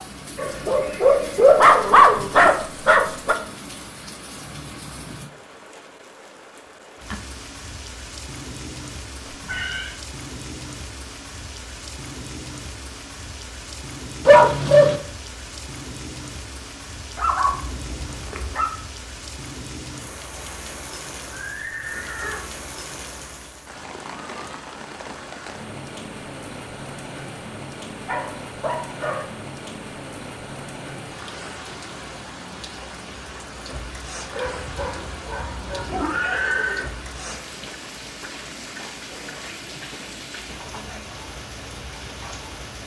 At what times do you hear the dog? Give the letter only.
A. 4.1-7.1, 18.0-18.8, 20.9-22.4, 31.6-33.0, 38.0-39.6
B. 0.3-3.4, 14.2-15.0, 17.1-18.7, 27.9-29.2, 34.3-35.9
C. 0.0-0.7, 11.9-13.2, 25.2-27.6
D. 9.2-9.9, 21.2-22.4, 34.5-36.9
B.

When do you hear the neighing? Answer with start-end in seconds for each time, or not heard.
9.2-9.9, 21.2-22.4, 34.5-36.9.